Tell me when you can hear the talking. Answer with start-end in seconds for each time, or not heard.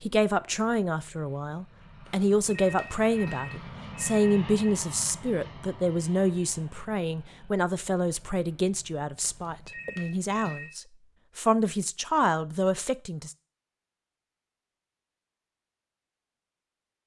0.0-13.3.